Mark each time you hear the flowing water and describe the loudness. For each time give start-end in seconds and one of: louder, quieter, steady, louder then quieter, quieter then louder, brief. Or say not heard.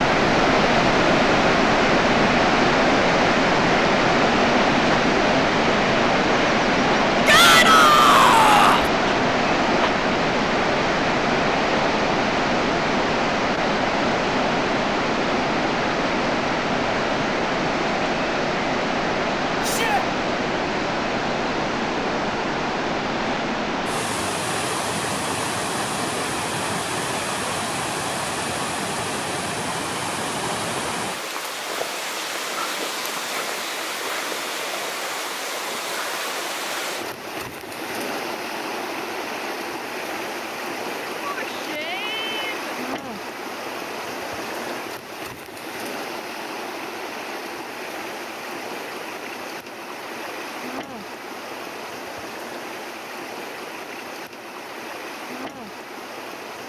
0.0-56.6 quieter.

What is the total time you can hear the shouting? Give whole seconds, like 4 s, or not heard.
4 s.